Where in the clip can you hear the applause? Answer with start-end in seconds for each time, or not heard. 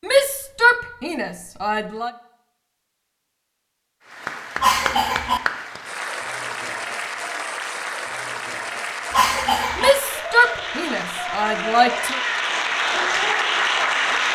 4.0-14.3.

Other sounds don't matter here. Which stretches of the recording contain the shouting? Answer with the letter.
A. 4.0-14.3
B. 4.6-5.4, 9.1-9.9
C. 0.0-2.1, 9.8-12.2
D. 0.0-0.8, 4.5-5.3
C.